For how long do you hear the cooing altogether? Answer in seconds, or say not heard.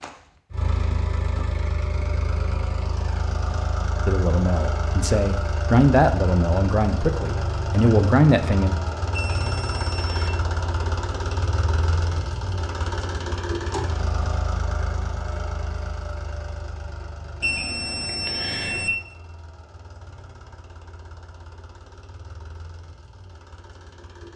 not heard.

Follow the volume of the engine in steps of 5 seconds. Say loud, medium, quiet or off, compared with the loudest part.
loud, loud, loud, medium, quiet.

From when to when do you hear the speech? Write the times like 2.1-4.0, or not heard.
4.0-8.8.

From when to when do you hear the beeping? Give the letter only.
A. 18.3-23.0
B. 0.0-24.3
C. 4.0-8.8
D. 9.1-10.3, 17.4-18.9
D.